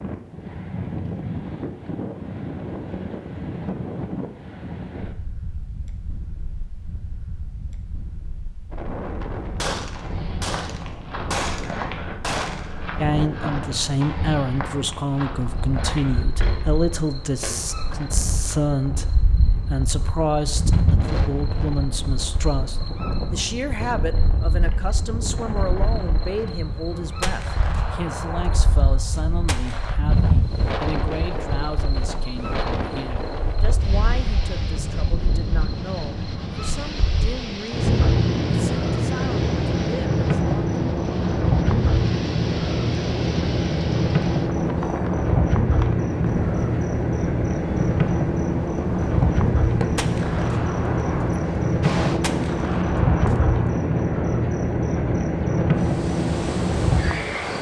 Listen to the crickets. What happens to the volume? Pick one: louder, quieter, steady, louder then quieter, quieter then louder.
louder.